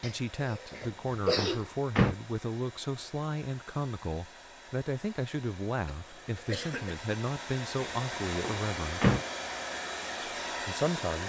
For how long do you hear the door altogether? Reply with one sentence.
You can hear the door for 3 seconds altogether.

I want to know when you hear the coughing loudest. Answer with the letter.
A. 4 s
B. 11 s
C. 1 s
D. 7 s
C.